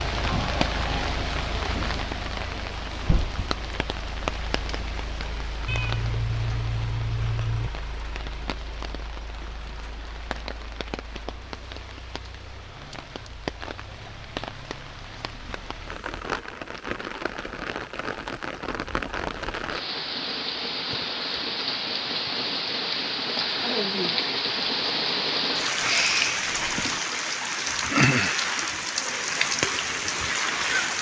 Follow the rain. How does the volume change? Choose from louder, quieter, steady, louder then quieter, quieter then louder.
quieter then louder.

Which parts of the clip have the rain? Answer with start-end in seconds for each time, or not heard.
0.0-30.9.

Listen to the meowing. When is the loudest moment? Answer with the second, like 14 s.
26 s.